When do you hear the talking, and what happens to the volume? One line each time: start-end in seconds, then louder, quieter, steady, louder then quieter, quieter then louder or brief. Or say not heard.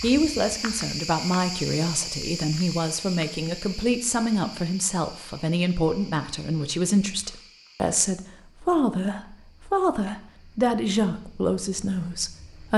0.0-12.7 steady.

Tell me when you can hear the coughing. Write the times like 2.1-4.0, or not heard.
not heard.